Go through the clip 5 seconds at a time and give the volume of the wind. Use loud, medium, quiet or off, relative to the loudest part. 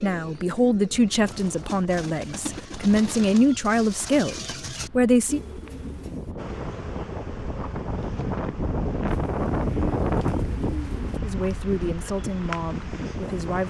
quiet, loud, loud.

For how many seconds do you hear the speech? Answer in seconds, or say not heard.
8 s.